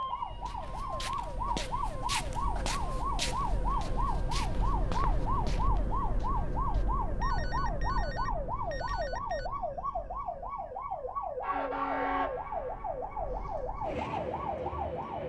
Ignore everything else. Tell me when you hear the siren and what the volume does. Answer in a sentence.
You can hear the siren from 0.0 to 15.2 s, at a steady volume.